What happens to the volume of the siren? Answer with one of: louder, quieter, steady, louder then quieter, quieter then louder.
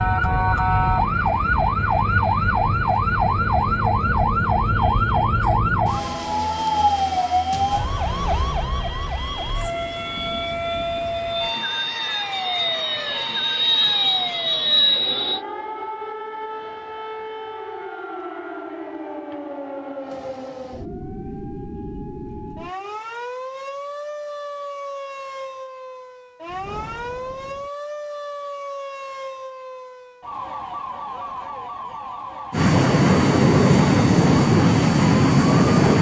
quieter.